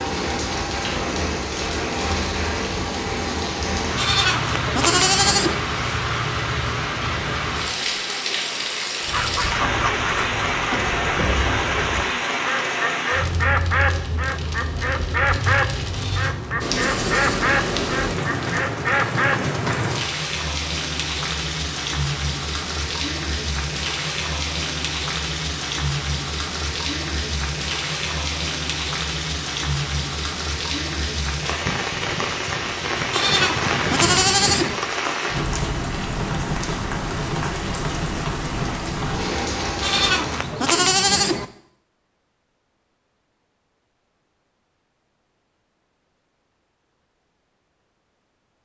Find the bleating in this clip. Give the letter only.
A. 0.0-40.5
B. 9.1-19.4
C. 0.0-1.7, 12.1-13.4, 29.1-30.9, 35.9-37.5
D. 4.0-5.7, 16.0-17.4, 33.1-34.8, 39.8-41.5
D.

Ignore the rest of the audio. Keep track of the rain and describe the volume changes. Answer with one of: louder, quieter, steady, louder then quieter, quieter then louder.
steady.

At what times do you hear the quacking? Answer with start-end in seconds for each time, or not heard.
9.1-19.4.